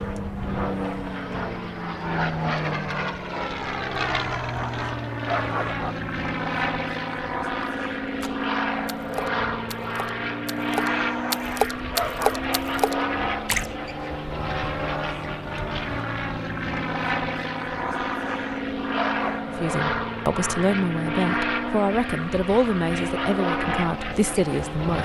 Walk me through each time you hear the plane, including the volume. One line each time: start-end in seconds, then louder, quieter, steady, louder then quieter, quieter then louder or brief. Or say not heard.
0.0-25.0 steady.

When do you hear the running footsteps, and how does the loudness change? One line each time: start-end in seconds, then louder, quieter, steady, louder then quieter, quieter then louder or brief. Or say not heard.
not heard.